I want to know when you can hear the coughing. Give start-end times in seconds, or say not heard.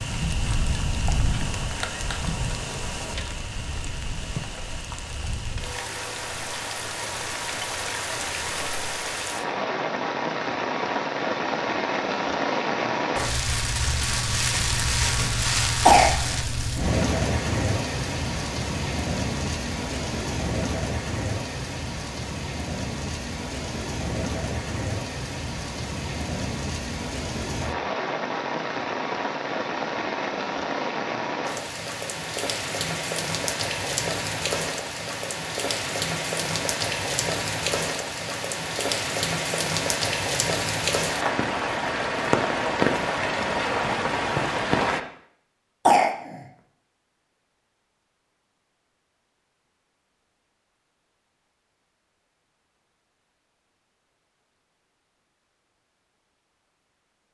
15.8-16.4, 45.9-46.4.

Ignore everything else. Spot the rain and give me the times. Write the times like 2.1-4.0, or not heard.
0.0-45.0.